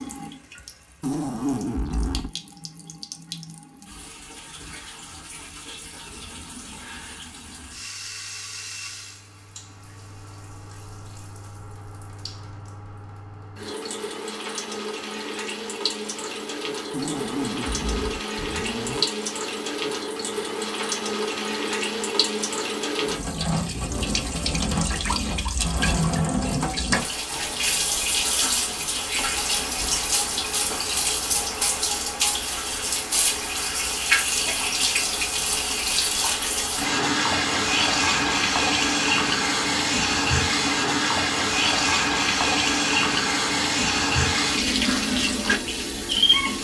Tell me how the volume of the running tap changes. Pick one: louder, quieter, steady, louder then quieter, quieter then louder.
louder.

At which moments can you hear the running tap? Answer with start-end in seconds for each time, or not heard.
0.0-46.5.